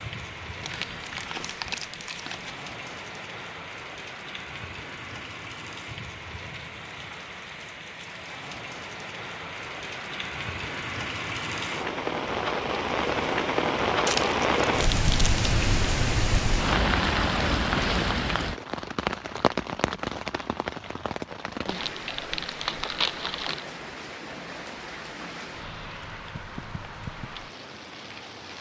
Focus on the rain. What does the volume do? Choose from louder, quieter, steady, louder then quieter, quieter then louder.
louder then quieter.